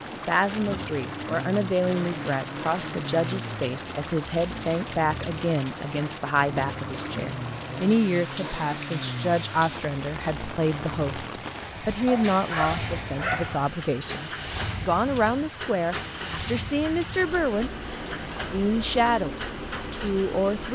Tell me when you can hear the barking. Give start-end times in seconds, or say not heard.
12.1-13.6.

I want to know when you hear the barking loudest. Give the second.
13 s.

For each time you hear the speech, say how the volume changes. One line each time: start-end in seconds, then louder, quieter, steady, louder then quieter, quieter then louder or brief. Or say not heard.
0.0-20.7 steady.